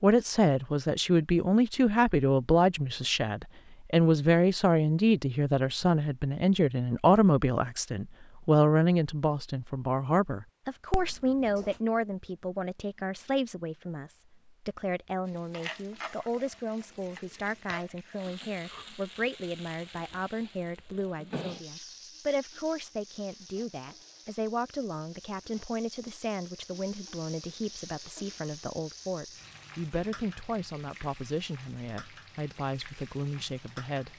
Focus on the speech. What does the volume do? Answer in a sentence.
The loudness of the speech goes down.